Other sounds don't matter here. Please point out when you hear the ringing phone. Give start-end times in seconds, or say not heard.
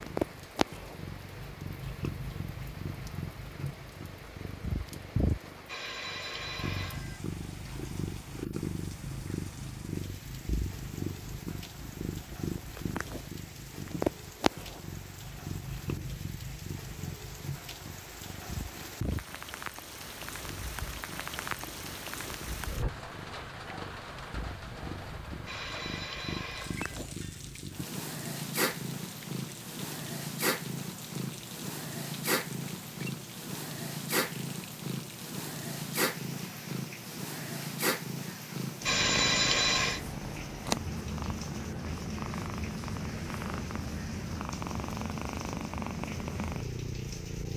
5.7-7.2, 25.4-26.9, 38.9-40.0.